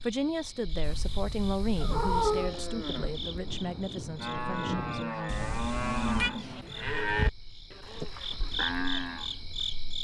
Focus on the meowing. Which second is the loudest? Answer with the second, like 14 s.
2 s.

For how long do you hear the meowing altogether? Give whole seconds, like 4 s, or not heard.
3 s.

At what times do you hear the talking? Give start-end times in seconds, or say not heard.
0.0-5.5.